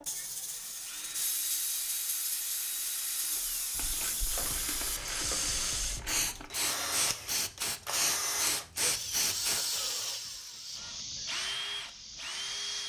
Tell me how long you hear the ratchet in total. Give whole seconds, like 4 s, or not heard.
3 s.